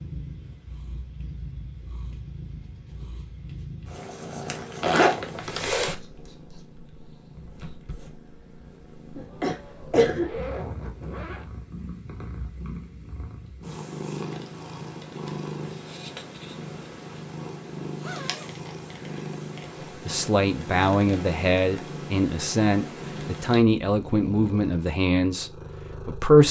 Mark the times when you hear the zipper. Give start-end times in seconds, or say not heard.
4.8-6.0, 10.2-11.5, 17.9-19.4.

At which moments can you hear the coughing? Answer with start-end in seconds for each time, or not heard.
9.2-10.3.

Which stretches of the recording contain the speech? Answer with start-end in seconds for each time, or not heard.
19.9-26.4.